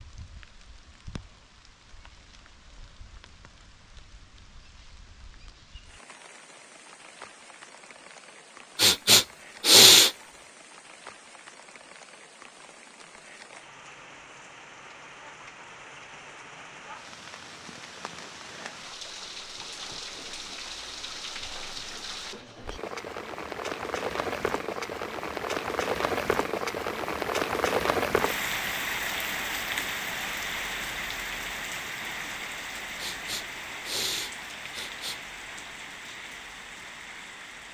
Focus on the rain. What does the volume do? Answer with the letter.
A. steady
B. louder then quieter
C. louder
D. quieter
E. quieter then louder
B.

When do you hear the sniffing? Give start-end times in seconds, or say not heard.
8.8-10.1, 33.0-35.2.